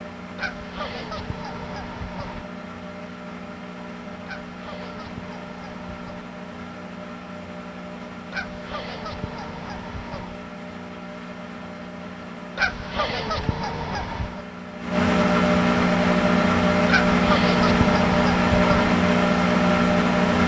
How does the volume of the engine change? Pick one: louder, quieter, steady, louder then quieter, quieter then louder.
louder.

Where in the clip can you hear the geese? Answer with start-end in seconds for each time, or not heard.
0.3-2.5, 4.2-6.3, 8.3-10.4, 12.6-14.4, 16.9-18.9.